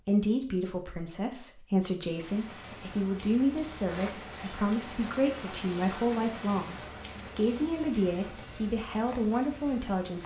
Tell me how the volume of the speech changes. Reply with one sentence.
The loudness of the speech stays about the same.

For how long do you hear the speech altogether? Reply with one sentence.
You can hear the speech for 10 seconds altogether.